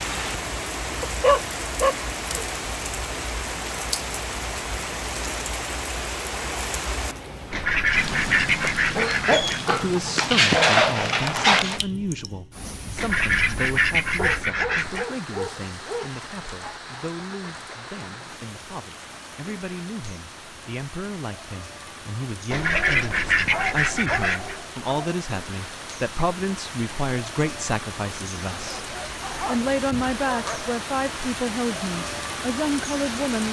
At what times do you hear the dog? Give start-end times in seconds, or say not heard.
1.0-2.5, 8.9-11.8, 14.2-16.1, 22.5-25.2, 28.5-30.8.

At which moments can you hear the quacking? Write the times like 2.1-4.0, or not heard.
7.5-9.6, 12.9-15.1, 22.5-24.6.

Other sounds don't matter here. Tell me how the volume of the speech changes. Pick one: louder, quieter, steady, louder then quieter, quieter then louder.
quieter then louder.